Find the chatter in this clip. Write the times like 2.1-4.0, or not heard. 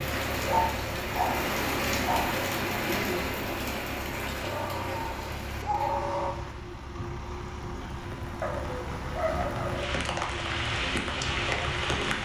not heard.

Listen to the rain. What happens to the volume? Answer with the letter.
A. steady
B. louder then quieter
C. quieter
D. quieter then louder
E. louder
D.